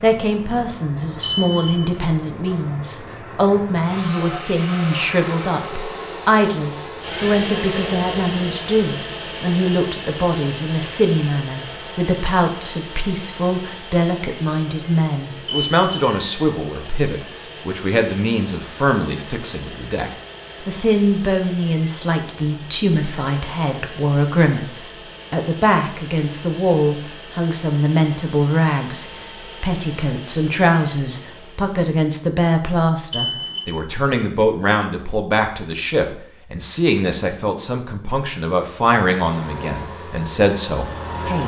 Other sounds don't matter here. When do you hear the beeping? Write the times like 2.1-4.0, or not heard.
1.2-1.8, 15.4-16.0, 33.1-33.6.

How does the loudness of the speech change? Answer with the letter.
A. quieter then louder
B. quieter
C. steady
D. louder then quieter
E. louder
C.